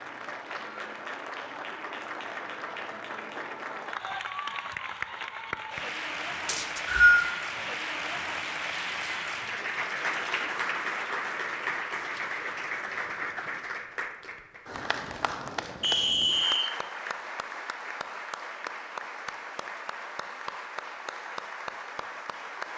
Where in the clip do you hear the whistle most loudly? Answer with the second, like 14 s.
7 s.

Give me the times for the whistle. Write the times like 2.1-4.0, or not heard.
6.5-7.2, 15.8-16.7.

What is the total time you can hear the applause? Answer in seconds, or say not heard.
23 s.